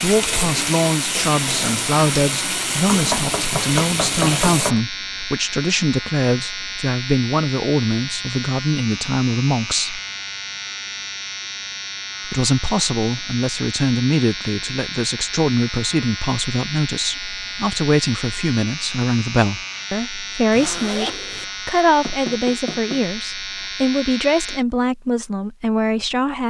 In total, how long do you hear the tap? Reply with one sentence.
You can hear the tap for 5 seconds altogether.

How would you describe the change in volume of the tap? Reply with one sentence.
The volume of the tap stays about the same.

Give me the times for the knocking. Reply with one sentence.
The knocking can be heard from 2.9 to 4.8 s and from 22.0 to 23.1 s.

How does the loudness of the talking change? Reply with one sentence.
The volume of the talking stays about the same.